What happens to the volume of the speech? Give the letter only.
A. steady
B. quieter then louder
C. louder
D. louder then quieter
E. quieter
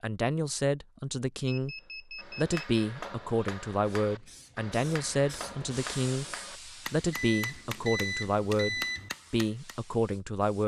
A.